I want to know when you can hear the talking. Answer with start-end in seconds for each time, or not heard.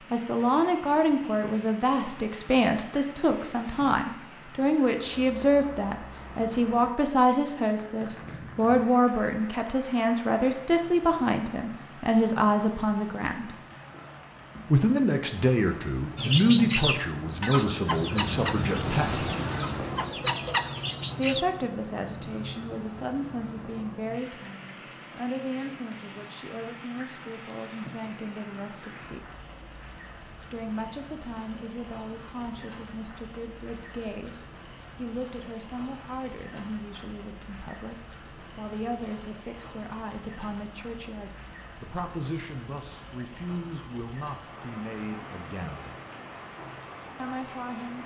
0.1-13.6, 14.7-19.2, 21.1-29.2, 30.5-46.0, 47.1-48.0.